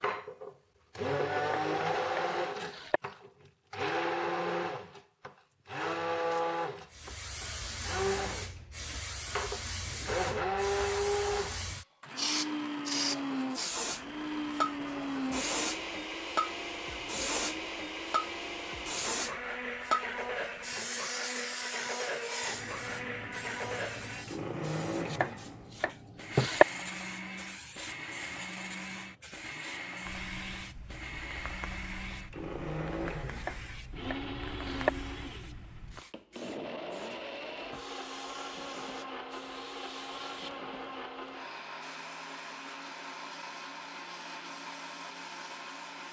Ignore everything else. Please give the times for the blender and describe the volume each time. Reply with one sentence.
The blender can be heard from 0.0 to 46.0 s, getting quieter.